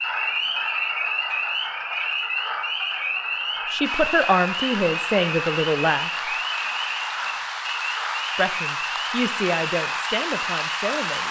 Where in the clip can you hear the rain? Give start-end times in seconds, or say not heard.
3.8-11.2.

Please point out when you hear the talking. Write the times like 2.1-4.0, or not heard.
3.7-6.1, 8.3-11.2.